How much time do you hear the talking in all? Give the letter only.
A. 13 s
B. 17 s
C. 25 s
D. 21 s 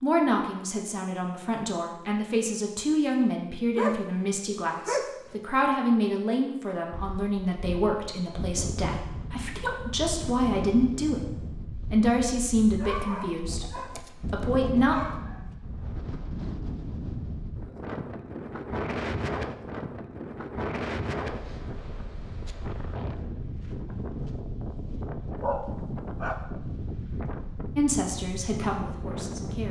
B.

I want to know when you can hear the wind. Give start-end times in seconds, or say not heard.
6.9-29.6.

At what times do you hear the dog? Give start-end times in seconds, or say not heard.
3.8-5.3, 12.8-15.4, 25.4-26.4.